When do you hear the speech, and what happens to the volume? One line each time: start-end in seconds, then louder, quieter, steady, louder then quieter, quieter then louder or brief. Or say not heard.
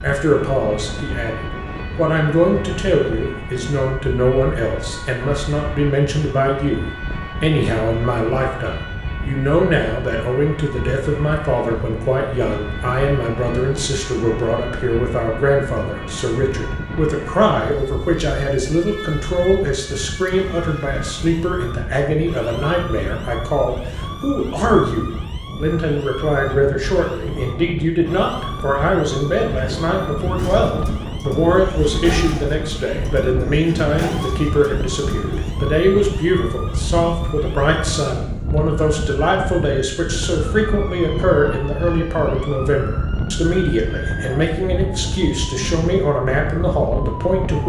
0.0-47.6 steady.